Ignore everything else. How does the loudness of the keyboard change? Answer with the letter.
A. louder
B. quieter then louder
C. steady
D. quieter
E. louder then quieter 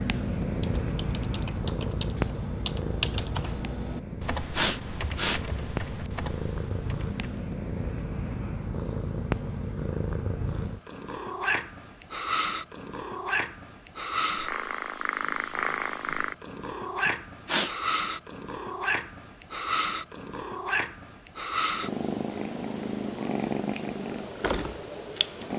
E.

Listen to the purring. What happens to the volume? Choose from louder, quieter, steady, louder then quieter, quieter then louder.
steady.